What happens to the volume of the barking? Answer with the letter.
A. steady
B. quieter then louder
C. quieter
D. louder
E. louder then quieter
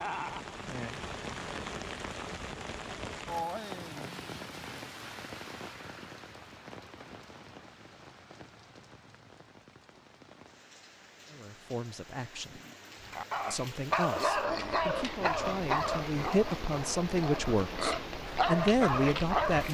B.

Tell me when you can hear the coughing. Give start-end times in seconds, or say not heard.
not heard.